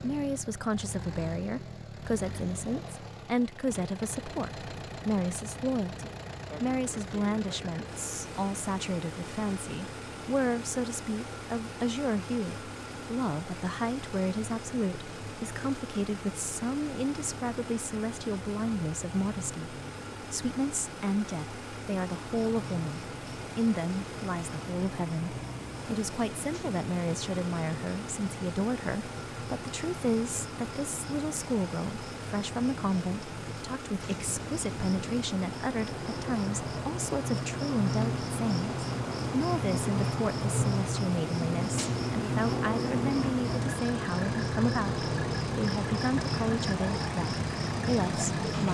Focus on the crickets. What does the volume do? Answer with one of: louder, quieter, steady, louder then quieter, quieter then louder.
louder.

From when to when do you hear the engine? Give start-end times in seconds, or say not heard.
0.0-48.6.